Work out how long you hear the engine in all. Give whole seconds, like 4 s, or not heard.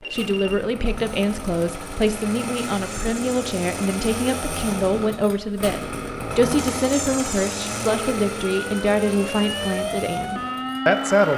11 s.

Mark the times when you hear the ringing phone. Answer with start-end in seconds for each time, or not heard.
0.0-0.6.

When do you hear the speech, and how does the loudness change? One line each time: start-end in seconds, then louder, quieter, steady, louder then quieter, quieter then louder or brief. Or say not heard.
0.0-11.3 steady.